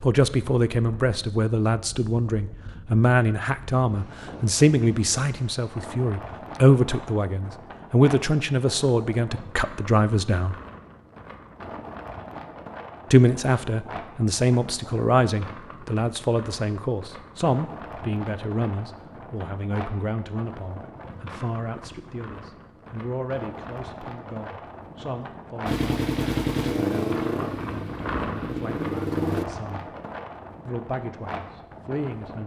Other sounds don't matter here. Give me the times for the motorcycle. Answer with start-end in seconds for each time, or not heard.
25.6-29.4.